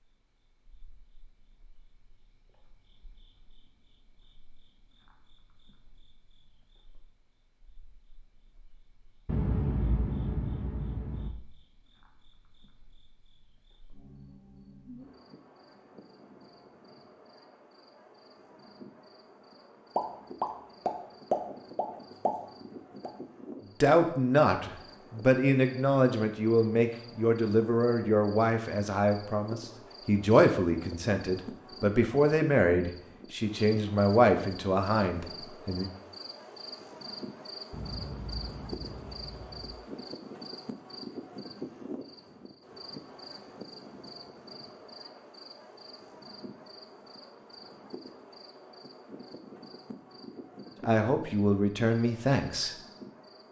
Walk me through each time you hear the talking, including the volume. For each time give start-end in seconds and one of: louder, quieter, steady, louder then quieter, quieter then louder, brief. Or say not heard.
23.8-35.9 steady
50.8-52.8 brief.